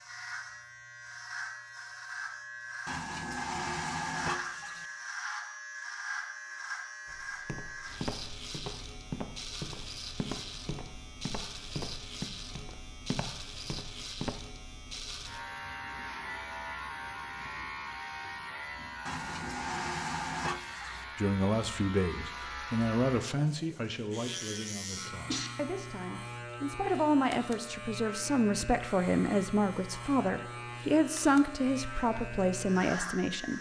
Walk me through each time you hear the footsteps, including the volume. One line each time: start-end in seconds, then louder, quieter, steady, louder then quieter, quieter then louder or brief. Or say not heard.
7.0-14.3 steady.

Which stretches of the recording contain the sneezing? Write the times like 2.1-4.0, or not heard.
24.6-25.5.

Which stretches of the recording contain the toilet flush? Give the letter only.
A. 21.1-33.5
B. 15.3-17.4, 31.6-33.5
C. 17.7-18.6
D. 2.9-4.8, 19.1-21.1
D.